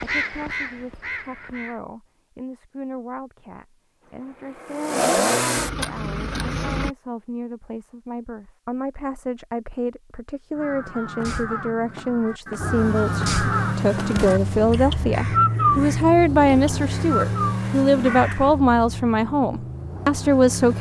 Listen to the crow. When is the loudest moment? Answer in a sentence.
The loudest moment of the crow is at 16 seconds.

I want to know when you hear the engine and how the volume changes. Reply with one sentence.
You can hear the engine briefly from 4.0 to 6.9 s; and from 12.6 to 20.7 s, getting quieter.